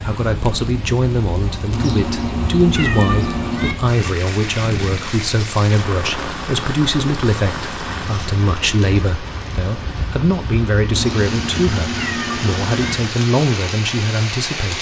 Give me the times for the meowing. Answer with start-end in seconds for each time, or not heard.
1.7-3.8, 10.9-12.9.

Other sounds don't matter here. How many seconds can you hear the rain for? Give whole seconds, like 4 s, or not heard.
15 s.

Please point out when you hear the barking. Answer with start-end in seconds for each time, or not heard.
not heard.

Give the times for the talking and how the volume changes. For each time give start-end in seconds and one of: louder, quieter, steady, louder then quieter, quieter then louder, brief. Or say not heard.
0.0-14.7 steady.